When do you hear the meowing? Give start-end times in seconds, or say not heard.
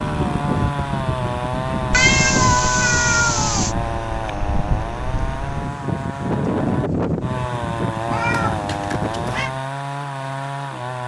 1.9-3.8, 8.1-9.5.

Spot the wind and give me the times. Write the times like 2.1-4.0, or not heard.
0.0-9.6.